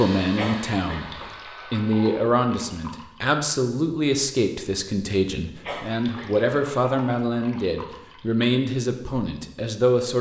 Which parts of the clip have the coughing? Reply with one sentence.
The coughing can be heard from 0.3 to 1.4 s and from 5.6 to 6.5 s.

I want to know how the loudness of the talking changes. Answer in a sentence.
The loudness of the talking stays about the same.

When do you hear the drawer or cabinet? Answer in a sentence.
You can't hear the drawer or cabinet here.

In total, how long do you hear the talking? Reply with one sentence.
You can hear the talking for 10 seconds altogether.